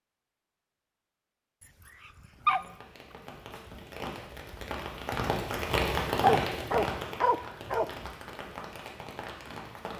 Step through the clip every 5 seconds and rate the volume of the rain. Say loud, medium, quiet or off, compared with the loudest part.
medium, loud.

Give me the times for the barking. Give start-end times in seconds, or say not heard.
2.0-2.6, 6.2-7.9.